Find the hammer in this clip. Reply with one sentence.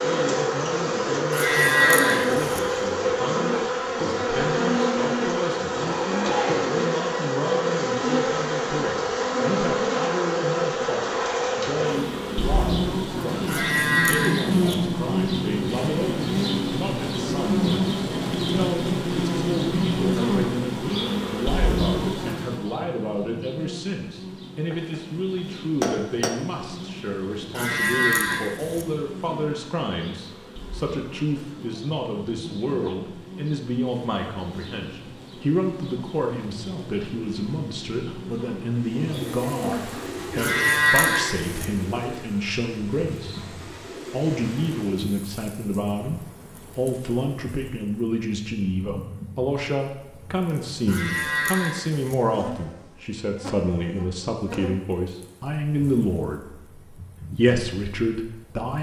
The hammer can be heard from 24.7 to 26.4 s.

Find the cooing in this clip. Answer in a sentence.
The cooing can be heard from 38.7 to 45.1 s.